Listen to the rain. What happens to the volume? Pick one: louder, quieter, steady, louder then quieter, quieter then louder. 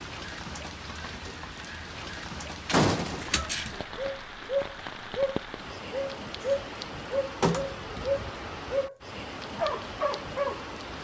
steady.